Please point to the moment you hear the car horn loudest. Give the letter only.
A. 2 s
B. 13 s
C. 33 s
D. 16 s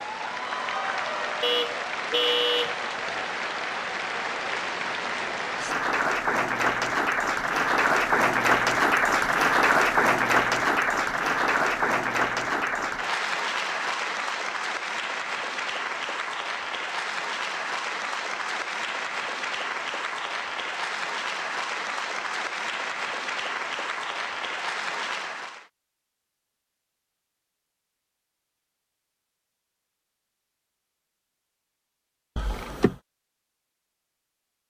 A.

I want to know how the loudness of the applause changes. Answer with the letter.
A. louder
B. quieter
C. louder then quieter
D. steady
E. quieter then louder
C.